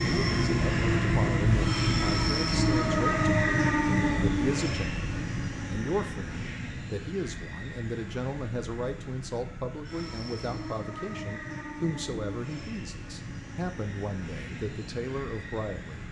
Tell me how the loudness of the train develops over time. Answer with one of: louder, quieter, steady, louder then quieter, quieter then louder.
quieter.